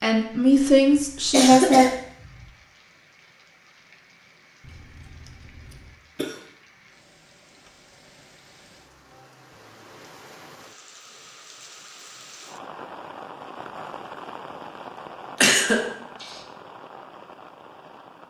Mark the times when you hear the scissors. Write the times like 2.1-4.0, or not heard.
4.6-6.0.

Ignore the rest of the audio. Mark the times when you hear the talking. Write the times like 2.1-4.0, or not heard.
0.0-1.9.